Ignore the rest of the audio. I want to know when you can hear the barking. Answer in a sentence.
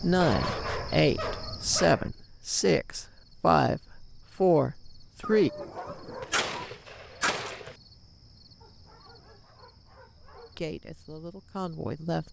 The barking can be heard from 0.2 to 2.1 s, from 5.2 to 6.7 s and from 8.6 to 10.6 s.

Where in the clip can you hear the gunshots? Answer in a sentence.
The gunshots can be heard from 6.2 to 7.8 s.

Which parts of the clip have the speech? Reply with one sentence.
You can hear the speech from 0.0 to 5.5 s and from 10.6 to 12.2 s.